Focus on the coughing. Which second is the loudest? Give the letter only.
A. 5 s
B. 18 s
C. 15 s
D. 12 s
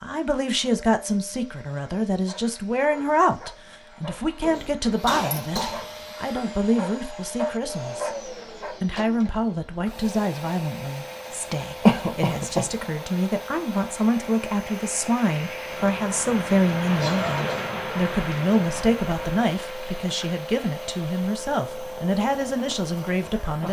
D.